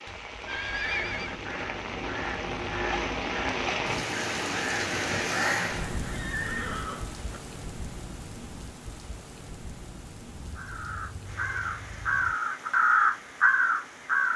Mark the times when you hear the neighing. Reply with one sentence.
You can hear the neighing from 0.1 to 1.4 s, from 6.0 to 7.4 s and from 10.4 to 12.3 s.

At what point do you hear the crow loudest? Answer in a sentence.
The volume of the crow peaks at 13 seconds.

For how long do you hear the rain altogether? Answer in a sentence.
The rain can be heard for 14 seconds in total.